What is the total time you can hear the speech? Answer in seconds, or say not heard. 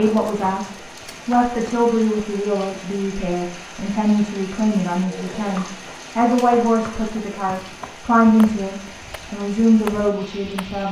11 s.